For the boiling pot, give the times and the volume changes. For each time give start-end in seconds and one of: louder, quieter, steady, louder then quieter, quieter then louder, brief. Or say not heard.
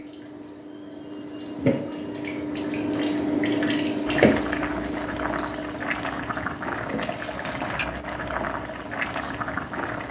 4.0-10.0 steady.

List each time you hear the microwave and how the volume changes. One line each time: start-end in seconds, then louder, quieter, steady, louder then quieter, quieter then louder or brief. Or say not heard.
not heard.